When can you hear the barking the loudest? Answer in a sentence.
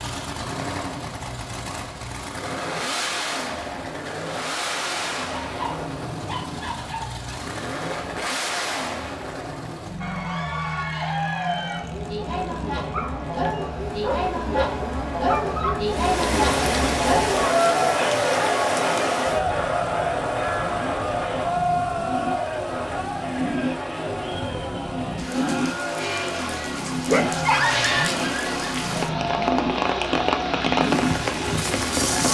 The volume of the barking peaks at 28 seconds.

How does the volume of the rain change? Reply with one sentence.
The loudness of the rain goes down, then up.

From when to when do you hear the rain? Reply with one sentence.
You can hear the rain from 15.8 to 32.3 s.